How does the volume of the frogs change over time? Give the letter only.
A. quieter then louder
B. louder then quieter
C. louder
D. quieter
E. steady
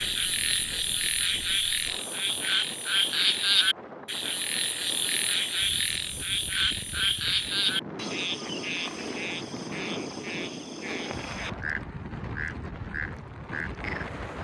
D.